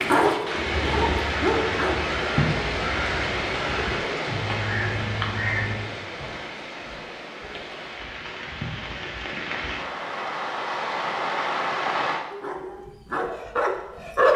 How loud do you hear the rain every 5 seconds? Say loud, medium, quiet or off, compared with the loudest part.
loud, medium, loud.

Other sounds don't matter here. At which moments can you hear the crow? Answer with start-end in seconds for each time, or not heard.
0.6-6.0.